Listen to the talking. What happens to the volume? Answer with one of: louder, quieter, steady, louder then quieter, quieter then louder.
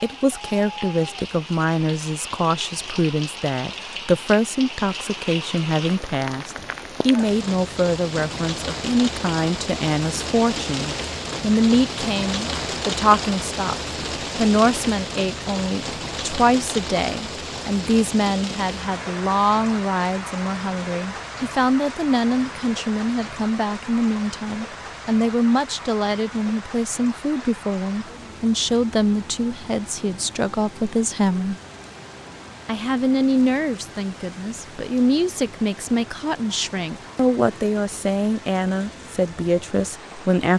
steady.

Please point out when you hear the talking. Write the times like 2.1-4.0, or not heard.
0.0-13.8, 14.3-31.6, 32.6-40.5.